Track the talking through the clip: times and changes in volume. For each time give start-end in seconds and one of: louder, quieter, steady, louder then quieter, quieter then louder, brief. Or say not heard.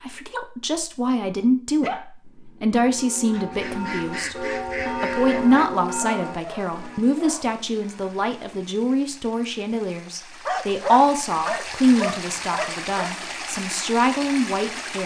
0.0-15.0 steady.